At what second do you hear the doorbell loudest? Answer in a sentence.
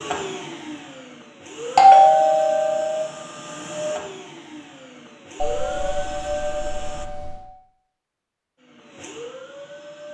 The volume of the doorbell peaks at 2 seconds.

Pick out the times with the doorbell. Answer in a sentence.
You can hear the doorbell from 1.8 to 3.0 s and from 5.3 to 7.5 s.